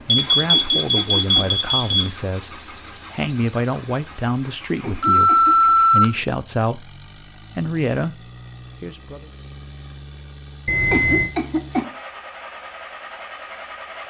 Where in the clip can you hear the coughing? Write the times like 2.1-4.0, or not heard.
0.5-1.5, 4.8-5.7, 10.9-11.9.